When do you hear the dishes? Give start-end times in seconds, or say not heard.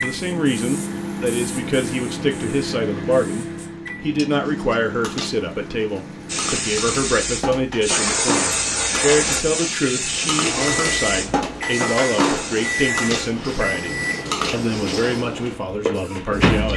4.0-14.7.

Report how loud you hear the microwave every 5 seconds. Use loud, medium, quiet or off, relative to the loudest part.
loud, medium, loud, loud.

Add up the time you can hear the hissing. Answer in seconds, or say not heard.
14 s.